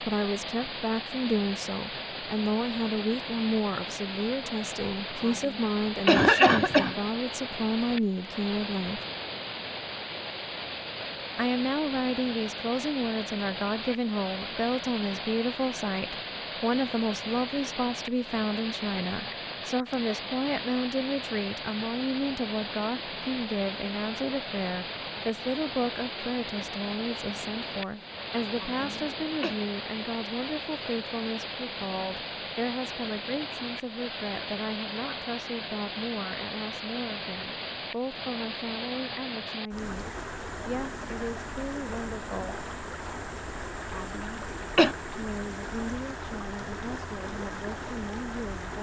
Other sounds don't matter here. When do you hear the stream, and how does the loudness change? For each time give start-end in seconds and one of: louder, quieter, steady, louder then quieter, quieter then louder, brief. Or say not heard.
0.0-48.7 steady.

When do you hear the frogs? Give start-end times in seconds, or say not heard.
not heard.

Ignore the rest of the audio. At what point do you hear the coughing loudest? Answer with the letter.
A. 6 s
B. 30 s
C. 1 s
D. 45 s
A.